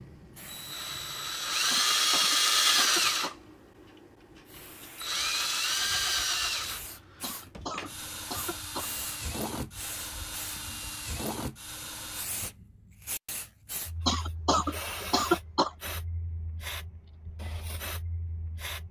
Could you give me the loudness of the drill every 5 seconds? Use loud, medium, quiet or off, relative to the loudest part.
loud, medium, quiet, off.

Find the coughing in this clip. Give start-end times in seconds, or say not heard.
1.7-3.4, 7.2-8.9, 14.1-15.7.